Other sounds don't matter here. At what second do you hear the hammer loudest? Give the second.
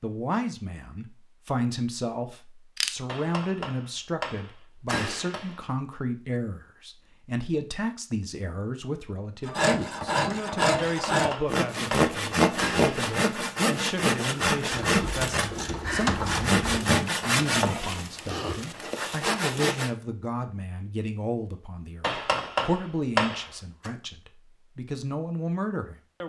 23 s.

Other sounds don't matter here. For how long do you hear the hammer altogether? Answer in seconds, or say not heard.
7 s.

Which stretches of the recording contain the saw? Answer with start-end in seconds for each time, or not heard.
9.4-19.9.